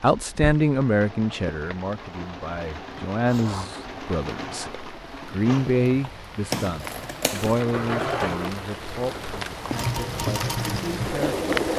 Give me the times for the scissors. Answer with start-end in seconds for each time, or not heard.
3.2-3.8, 6.5-7.5.